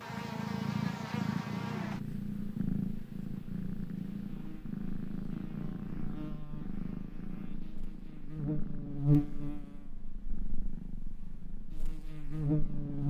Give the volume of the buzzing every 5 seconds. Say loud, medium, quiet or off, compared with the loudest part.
medium, loud, loud.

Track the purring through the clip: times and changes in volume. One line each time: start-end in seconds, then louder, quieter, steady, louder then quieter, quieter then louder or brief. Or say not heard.
0.0-13.0 quieter.